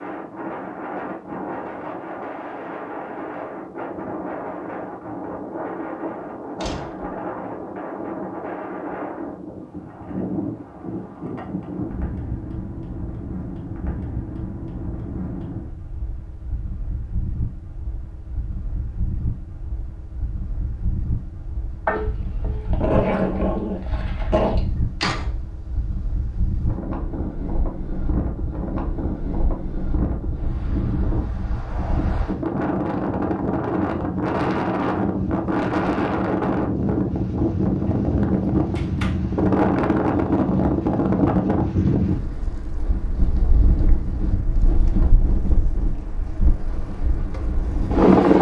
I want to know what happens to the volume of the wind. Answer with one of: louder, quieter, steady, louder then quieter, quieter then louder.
louder.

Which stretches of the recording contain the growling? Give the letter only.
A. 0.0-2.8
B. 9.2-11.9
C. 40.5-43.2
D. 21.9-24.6
D.